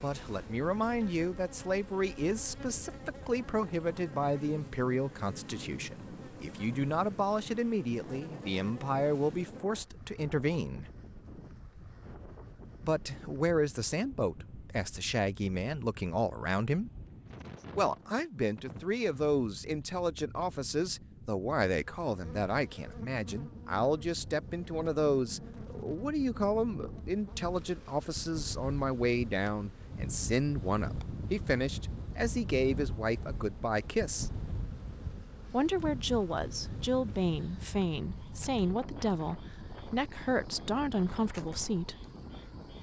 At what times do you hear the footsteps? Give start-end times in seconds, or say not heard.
not heard.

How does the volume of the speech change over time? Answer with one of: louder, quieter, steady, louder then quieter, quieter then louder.
steady.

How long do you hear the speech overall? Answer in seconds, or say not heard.
38 s.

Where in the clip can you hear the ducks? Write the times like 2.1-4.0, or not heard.
not heard.